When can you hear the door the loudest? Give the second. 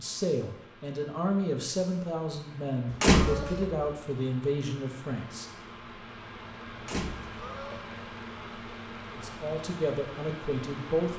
3 s.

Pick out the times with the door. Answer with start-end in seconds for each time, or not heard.
2.9-3.7, 6.8-7.4.